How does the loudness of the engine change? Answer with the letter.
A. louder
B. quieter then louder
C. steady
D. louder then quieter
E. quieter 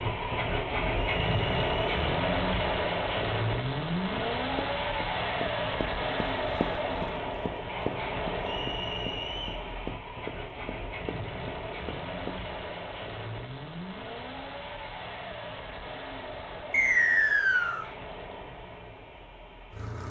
E.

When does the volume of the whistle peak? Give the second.
17 s.